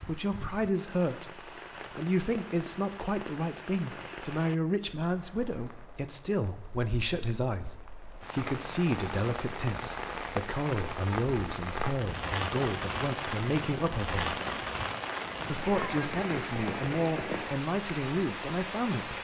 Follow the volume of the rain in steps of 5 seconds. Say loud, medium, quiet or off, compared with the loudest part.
medium, medium, loud, loud.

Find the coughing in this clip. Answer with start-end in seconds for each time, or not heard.
not heard.